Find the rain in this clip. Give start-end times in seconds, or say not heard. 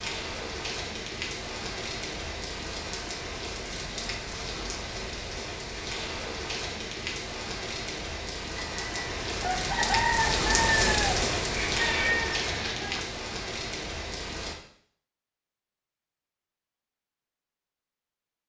0.0-14.6.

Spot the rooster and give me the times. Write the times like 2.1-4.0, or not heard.
8.6-13.2.